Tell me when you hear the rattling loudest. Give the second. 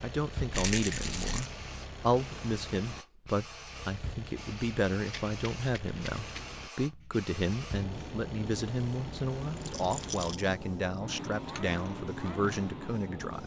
1 s.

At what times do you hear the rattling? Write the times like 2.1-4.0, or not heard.
0.5-1.5, 5.0-6.6, 9.6-10.4.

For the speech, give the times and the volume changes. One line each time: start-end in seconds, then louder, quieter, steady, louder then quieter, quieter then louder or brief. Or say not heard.
0.0-13.4 steady.